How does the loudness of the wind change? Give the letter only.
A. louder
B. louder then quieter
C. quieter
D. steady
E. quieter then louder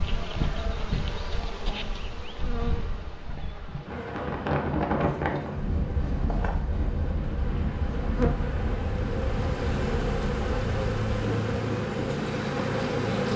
C.